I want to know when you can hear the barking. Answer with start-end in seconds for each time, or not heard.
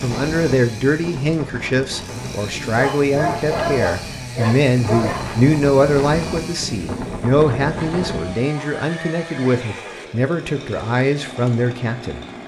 2.8-5.2.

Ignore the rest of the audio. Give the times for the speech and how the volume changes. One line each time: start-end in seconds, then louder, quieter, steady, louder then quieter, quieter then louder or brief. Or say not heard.
0.0-12.2 steady.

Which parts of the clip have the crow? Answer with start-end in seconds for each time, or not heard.
not heard.